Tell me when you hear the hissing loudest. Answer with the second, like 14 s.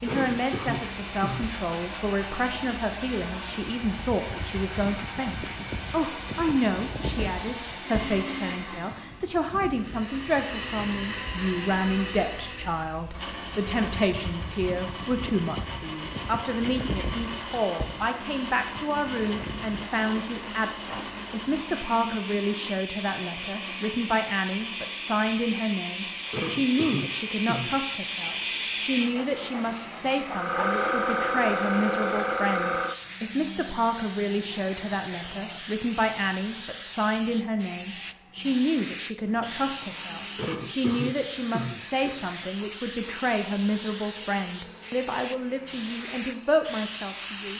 31 s.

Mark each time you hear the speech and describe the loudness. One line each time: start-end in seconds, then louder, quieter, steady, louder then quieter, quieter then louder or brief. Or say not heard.
0.0-47.5 steady.